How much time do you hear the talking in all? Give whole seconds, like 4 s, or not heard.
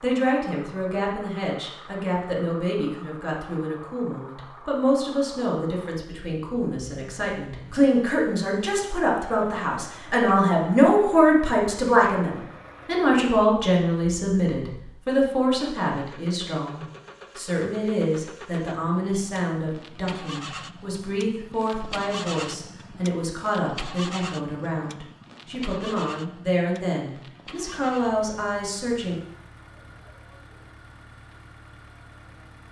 29 s.